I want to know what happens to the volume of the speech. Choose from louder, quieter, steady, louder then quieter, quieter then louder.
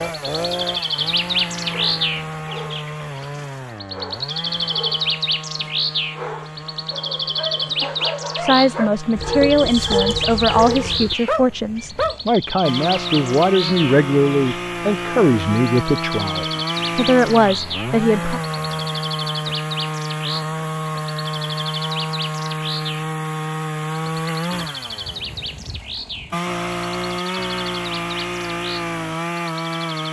steady.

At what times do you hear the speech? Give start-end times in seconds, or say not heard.
8.3-18.4.